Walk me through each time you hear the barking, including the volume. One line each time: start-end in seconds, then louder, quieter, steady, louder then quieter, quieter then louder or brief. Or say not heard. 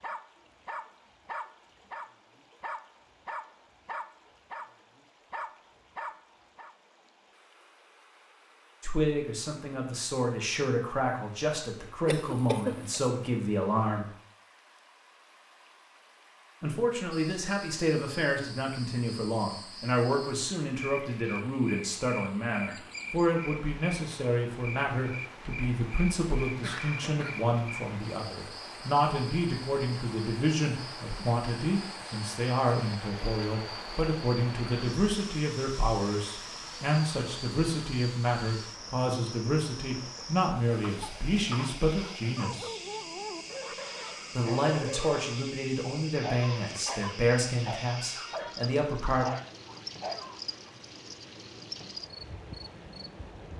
0.0-6.8 steady
42.0-50.5 steady.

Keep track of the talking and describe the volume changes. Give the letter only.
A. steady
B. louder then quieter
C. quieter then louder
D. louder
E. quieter
A.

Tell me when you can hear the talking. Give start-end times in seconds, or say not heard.
8.8-14.1, 16.6-42.8, 44.4-49.2.